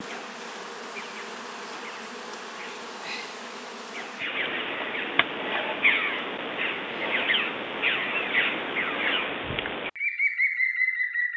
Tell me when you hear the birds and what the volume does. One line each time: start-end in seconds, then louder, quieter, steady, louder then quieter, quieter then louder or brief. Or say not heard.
0.0-11.3 louder.